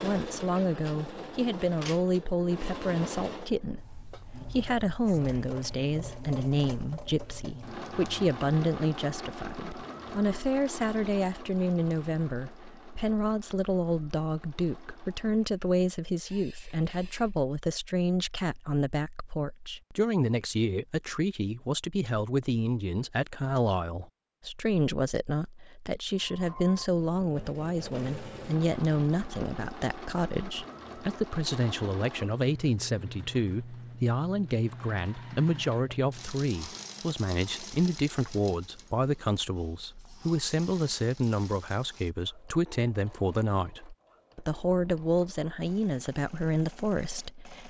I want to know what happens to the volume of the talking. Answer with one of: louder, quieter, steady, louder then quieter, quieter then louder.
steady.